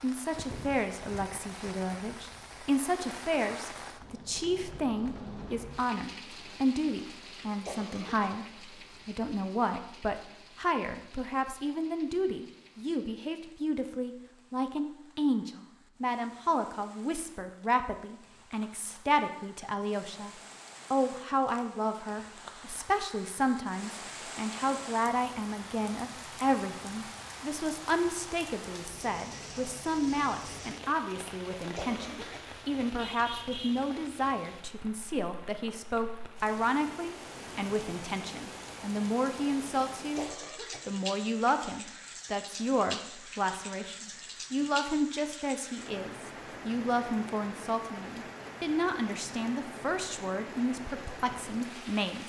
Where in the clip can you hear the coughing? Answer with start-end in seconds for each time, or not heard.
7.7-8.3, 31.8-32.4, 40.1-40.8.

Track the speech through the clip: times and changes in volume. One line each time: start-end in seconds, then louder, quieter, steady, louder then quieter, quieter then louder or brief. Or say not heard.
0.0-20.3 steady
20.9-52.2 steady.